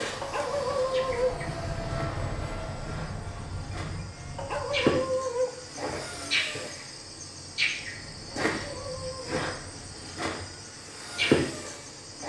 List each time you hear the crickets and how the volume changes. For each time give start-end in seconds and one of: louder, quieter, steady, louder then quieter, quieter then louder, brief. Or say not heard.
0.0-12.2 louder.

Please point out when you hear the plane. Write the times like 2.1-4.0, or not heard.
0.0-12.2.